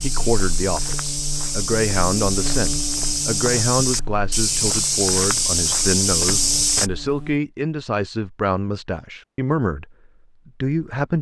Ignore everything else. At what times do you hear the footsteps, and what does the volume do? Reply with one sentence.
The footsteps can be heard from 0.0 to 6.9 s, getting louder.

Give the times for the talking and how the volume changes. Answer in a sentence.
You can hear the talking from 0.0 to 11.1 s, at a steady volume.